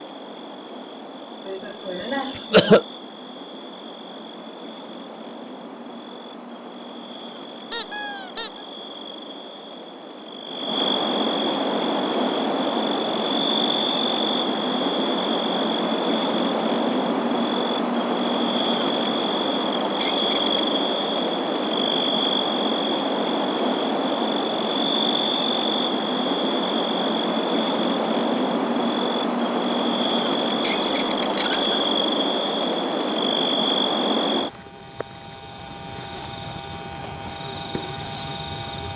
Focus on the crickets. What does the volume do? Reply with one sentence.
The loudness of the crickets goes up.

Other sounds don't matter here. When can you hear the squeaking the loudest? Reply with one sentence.
The loudest moment of the squeaking is at 8 seconds.